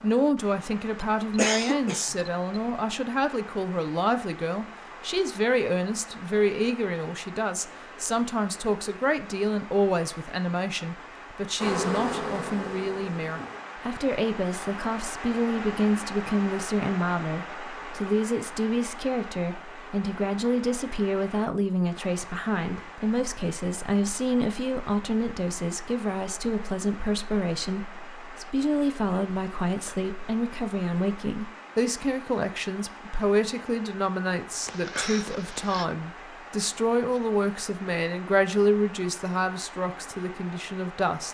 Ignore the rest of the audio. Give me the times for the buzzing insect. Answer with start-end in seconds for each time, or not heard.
11.6-13.6.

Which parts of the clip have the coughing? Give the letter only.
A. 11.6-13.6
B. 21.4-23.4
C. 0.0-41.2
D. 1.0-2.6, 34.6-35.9
D.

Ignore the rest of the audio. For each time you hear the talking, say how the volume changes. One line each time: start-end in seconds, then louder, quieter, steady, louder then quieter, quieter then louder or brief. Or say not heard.
0.0-41.2 steady.